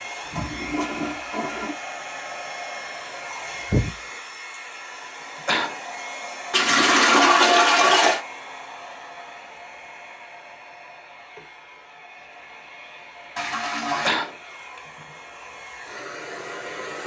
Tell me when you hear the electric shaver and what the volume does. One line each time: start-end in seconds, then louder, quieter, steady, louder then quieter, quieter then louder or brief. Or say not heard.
not heard.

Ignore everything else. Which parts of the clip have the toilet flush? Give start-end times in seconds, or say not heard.
0.3-1.8, 6.5-8.2, 13.3-14.1.